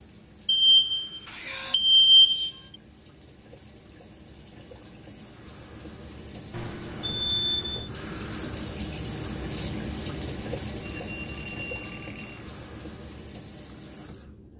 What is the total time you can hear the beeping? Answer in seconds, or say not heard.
5 s.